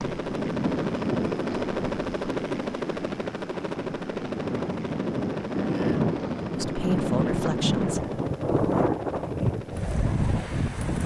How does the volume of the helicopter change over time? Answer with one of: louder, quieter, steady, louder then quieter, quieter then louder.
quieter.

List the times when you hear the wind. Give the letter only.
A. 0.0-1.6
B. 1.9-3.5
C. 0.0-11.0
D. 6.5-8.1
C.